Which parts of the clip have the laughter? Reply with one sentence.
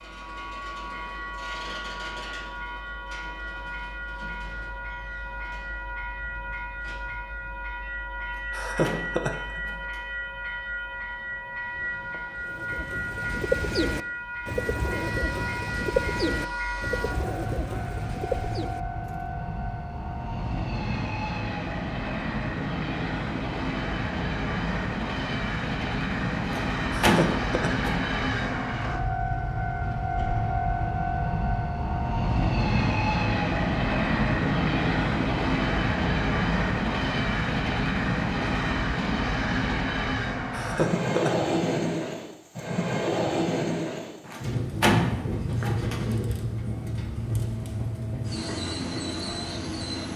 The laughter can be heard from 8.5 to 9.6 s, from 26.9 to 27.9 s and from 40.5 to 41.4 s.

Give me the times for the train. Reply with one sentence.
You can hear the train from 0.0 to 50.1 s.